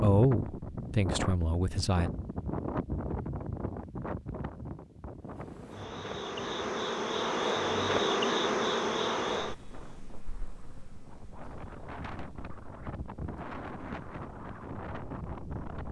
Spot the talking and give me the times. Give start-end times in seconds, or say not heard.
0.0-2.1.